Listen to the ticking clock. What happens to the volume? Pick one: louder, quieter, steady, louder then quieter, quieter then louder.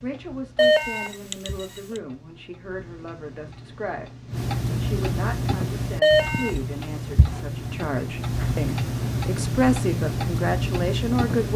louder.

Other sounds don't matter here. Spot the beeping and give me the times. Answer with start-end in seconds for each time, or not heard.
0.6-2.0, 6.0-6.5.